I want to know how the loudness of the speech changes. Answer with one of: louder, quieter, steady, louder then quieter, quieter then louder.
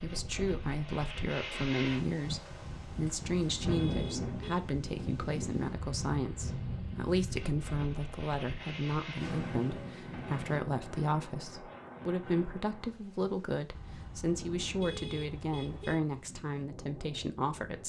steady.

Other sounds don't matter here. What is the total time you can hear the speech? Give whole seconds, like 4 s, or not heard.
18 s.